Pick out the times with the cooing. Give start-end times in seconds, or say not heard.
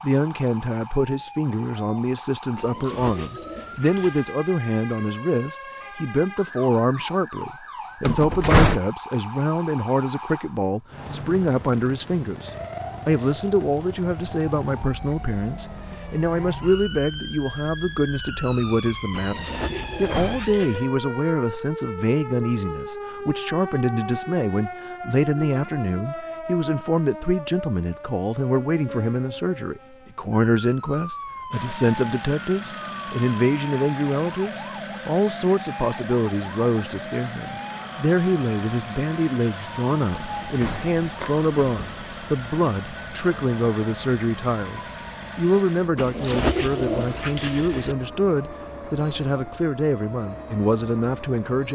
2.5-4.3, 19.1-20.9, 46.0-48.0.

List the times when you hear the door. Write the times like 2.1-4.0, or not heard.
8.1-8.8, 19.6-20.5, 40.1-42.1.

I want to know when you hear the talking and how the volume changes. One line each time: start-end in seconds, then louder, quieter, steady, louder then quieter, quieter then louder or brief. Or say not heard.
0.0-51.6 steady.